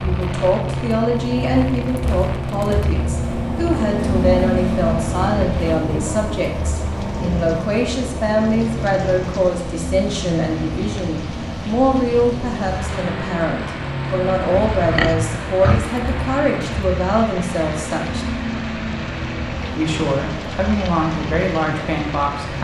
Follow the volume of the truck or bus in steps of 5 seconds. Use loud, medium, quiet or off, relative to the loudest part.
loud, loud, medium, medium, medium.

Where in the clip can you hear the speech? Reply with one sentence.
You can hear the speech from 0.0 to 18.2 s and from 19.8 to 22.5 s.